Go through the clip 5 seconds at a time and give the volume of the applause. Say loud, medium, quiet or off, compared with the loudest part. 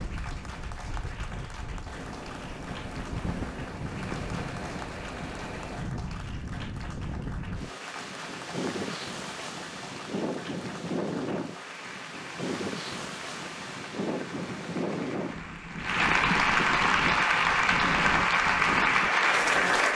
quiet, quiet, quiet, loud.